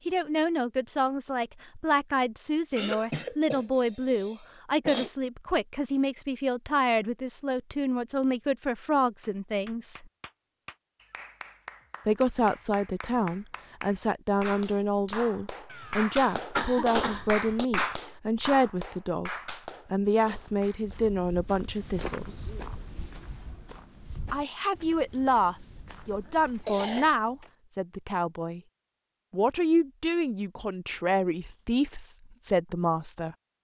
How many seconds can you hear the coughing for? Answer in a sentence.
The coughing can be heard for 5 seconds in total.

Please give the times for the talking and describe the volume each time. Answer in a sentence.
You can hear the talking from 0.1 to 10.1 s, at a steady volume; from 12.1 to 19.3 s, at a steady volume; briefly from 19.9 to 22.5 s; from 24.3 to 28.6 s, getting quieter; and from 29.3 to 33.4 s, getting quieter then louder.